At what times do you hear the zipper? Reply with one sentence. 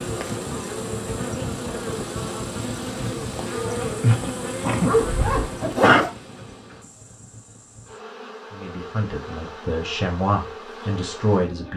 The zipper can be heard from 4.8 to 6.1 s.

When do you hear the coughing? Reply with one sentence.
The coughing can be heard from 4.0 to 6.0 s.